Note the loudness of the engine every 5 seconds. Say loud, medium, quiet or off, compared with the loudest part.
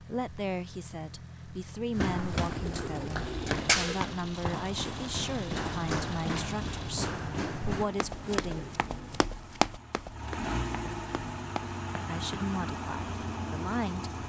medium, medium, loud.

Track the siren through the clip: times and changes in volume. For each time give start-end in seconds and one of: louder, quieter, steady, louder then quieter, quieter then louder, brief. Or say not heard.
not heard.